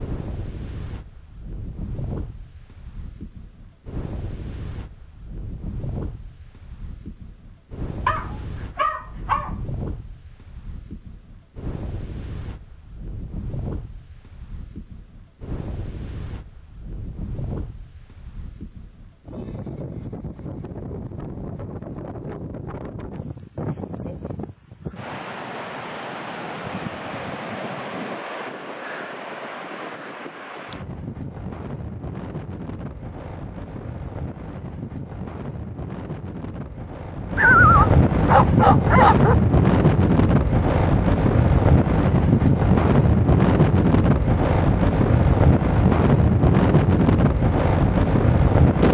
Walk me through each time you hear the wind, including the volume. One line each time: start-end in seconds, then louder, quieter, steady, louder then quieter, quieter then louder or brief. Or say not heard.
0.0-48.8 louder.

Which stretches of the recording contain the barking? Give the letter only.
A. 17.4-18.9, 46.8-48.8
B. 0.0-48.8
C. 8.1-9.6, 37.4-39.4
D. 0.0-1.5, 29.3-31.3
C.